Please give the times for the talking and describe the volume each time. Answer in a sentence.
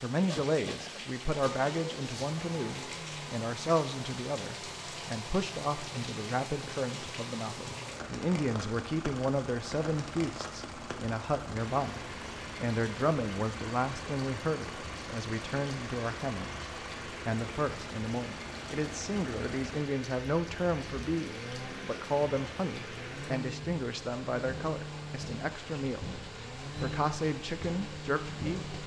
You can hear the talking from 0.0 to 28.7 s, at a steady volume.